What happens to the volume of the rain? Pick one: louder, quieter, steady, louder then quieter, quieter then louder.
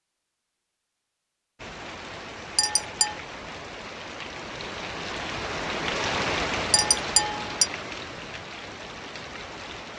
louder then quieter.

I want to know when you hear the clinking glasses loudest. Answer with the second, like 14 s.
7 s.